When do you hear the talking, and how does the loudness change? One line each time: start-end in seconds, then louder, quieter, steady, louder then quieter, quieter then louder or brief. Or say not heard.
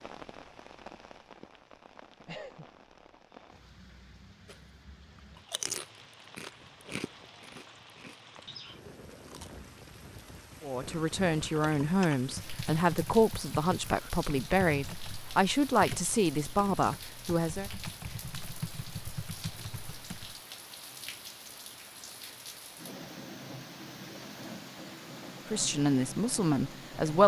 10.6-17.7 steady
25.5-27.2 brief.